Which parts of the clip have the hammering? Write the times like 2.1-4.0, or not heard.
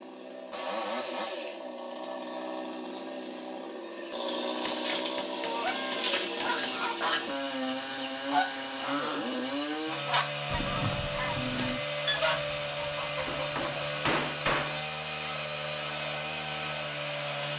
4.7-6.8, 13.2-14.8.